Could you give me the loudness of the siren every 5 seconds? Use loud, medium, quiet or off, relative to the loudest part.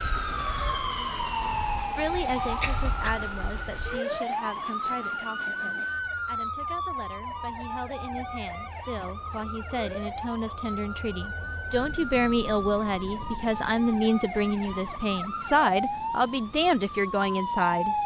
loud, loud, medium, loud.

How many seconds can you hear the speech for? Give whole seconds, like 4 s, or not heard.
16 s.